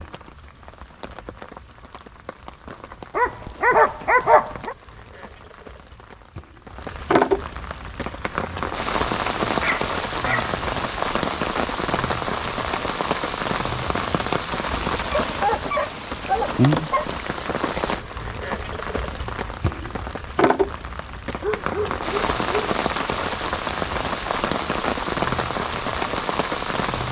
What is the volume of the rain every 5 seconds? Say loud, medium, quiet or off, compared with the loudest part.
quiet, loud, loud, loud, loud, loud.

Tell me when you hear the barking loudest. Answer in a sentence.
The loudest moment of the barking is at 4 seconds.